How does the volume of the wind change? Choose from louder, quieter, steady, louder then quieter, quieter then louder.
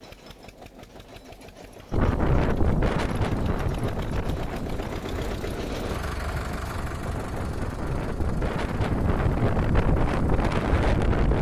quieter then louder.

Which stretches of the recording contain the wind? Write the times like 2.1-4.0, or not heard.
1.9-11.3.